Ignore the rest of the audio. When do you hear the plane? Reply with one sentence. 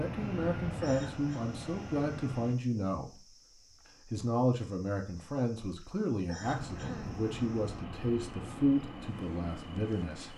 The plane can be heard from 0.0 to 2.5 s and from 6.4 to 10.3 s.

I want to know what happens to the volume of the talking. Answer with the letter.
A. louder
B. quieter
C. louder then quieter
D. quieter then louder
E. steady
E.